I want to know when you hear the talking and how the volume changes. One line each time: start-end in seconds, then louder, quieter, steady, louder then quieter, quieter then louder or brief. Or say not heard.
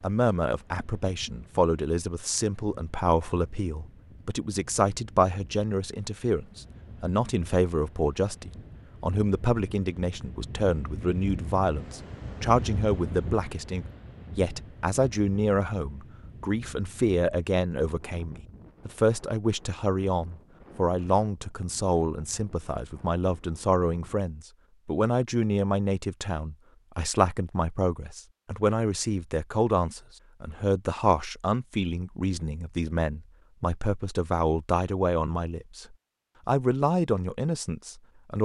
0.0-38.3 steady.